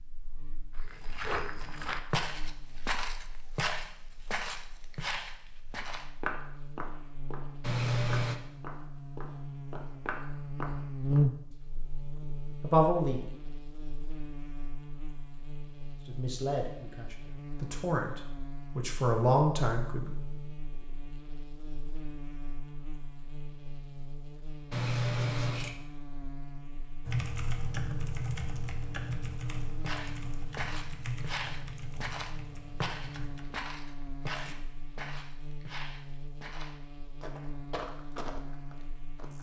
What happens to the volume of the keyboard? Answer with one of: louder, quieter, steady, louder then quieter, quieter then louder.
quieter.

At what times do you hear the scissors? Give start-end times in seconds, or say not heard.
7.6-8.4, 24.7-25.8.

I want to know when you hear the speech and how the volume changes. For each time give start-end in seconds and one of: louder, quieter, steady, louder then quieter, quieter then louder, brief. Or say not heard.
12.6-13.2 brief
16.1-20.1 quieter then louder.